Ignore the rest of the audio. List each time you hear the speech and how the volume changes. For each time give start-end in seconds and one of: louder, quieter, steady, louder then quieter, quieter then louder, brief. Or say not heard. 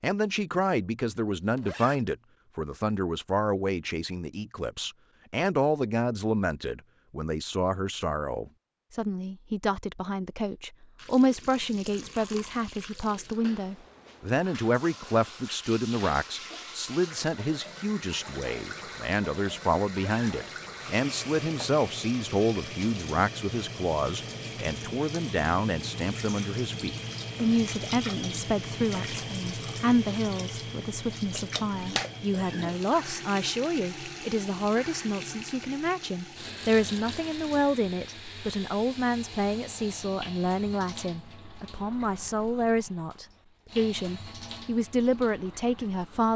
0.0-46.3 steady.